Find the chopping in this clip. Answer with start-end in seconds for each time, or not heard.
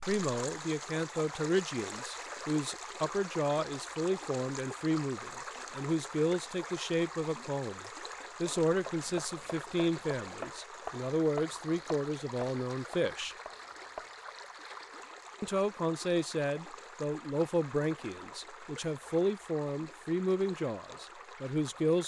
8.7-14.1.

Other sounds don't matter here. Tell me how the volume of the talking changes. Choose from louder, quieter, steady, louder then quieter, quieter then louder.
steady.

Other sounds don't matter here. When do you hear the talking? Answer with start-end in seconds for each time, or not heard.
0.1-7.8, 8.4-13.3, 15.4-22.0.